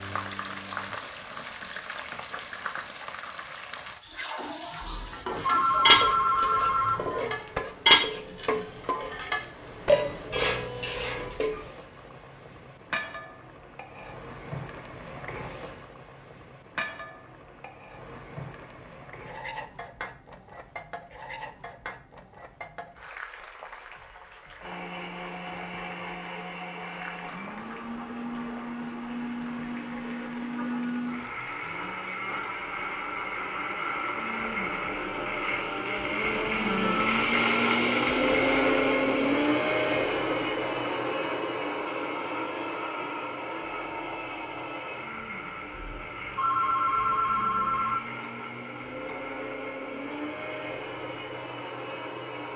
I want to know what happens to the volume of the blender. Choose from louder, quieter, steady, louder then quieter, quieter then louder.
louder then quieter.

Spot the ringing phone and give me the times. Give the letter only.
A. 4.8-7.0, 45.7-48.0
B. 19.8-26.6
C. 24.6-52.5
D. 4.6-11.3
A.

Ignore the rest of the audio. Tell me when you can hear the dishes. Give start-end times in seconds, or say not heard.
4.6-11.3.